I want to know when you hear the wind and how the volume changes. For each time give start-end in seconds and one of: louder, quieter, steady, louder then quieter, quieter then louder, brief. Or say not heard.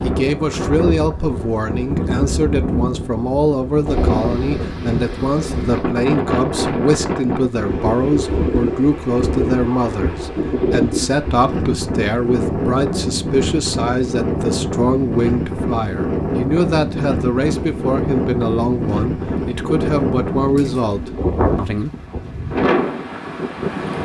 0.0-24.0 steady.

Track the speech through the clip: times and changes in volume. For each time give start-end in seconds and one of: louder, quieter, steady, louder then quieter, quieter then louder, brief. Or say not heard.
0.0-21.9 steady.